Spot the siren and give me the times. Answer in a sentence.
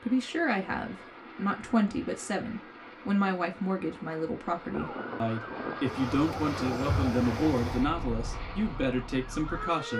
The siren can be heard from 4.7 to 9.9 s.